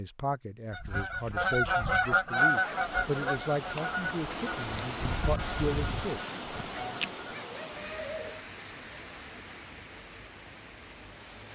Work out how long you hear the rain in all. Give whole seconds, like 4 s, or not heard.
9 s.